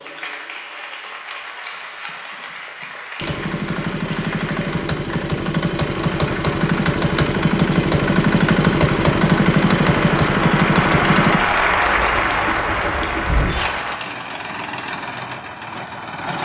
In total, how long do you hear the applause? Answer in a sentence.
You can hear the applause for 14 seconds altogether.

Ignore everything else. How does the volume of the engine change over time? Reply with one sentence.
The loudness of the engine goes up, then down.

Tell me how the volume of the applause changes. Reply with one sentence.
The loudness of the applause goes up.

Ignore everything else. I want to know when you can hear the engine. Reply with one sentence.
The engine can be heard from 3.1 to 16.4 s.